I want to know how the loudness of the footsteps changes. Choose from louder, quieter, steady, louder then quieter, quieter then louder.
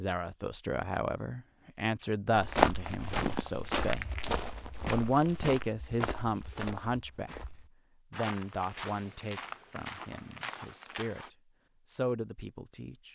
quieter.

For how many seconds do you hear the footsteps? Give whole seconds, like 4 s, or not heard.
9 s.